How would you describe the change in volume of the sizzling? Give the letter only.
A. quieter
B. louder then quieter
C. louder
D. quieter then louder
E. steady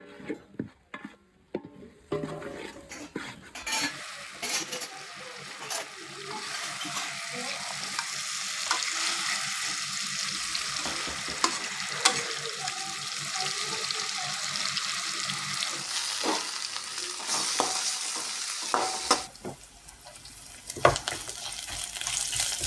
C.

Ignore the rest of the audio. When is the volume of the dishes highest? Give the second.
4 s.